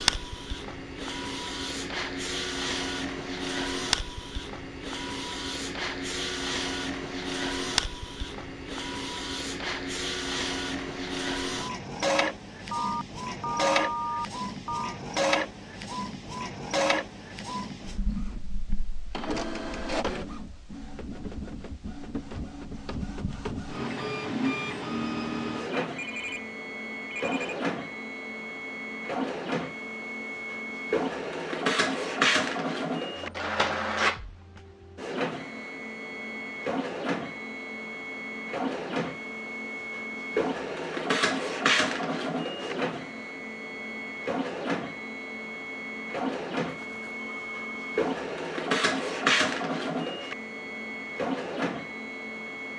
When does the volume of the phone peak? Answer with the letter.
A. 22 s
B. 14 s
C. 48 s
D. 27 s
B.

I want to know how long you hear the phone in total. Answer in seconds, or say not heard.
5 s.